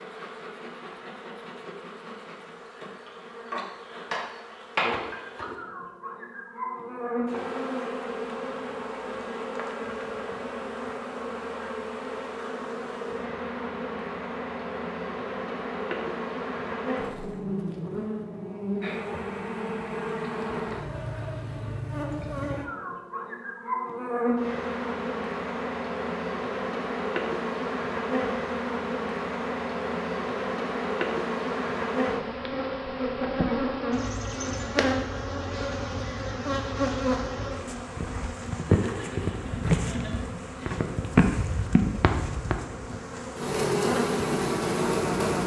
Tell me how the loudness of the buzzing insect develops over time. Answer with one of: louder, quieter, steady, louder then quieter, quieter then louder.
louder.